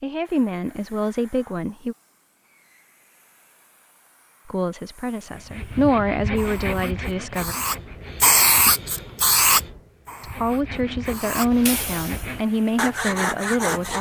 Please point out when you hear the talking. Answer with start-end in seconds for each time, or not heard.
0.0-1.9, 4.5-7.5, 10.2-13.9.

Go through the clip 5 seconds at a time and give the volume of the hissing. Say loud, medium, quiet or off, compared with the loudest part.
quiet, loud, medium.